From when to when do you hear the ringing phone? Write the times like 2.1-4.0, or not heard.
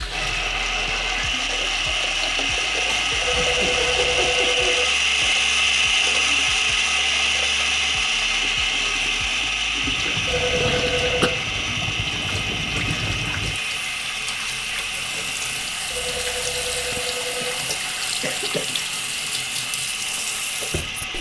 3.2-4.9, 10.2-11.3, 15.9-17.6.